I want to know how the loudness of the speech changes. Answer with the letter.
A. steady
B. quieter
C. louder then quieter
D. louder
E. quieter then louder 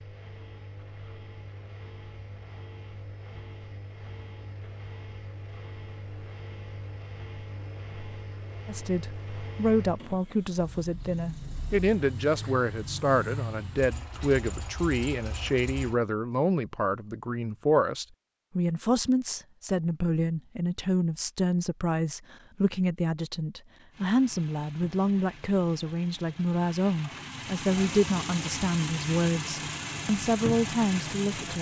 A.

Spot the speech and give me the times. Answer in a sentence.
The speech can be heard from 8.7 to 31.5 s.